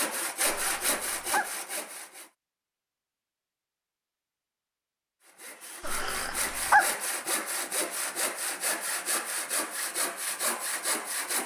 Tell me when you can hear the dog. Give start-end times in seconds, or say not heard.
0.5-1.6, 5.8-7.0.